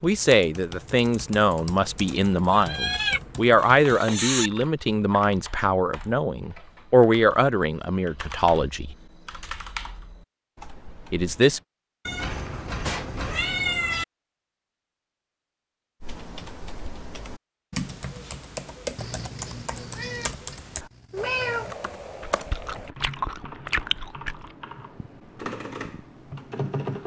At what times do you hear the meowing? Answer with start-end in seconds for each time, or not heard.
2.5-4.5, 12.1-14.1, 18.9-21.8.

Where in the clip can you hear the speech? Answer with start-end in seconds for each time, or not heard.
0.0-8.9, 11.1-11.6.